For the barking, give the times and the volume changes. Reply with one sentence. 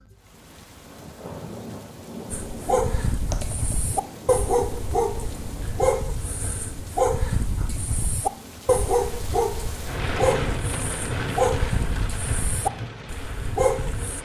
The barking can be heard from 2.3 to 14.2 s, at a steady volume.